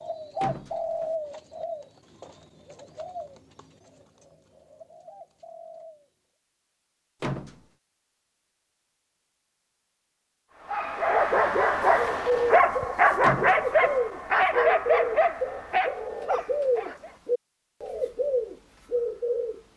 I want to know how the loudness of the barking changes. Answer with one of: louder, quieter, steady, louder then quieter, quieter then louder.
quieter.